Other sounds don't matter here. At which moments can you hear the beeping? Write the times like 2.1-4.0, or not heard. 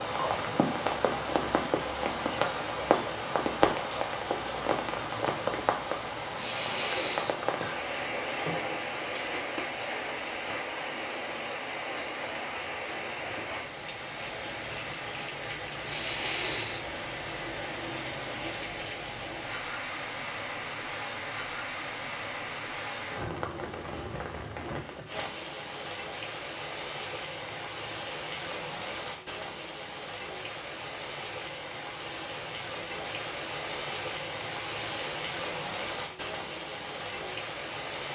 not heard.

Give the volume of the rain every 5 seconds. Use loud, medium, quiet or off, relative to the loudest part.
loud, loud, medium, medium, medium, medium, medium, medium.